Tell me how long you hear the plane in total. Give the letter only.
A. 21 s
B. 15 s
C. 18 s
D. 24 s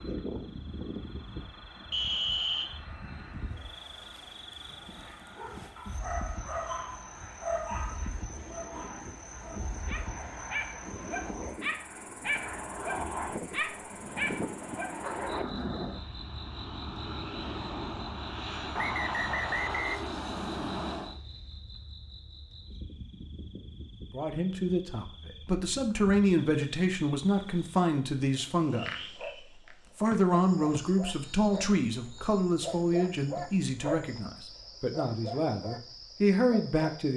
A.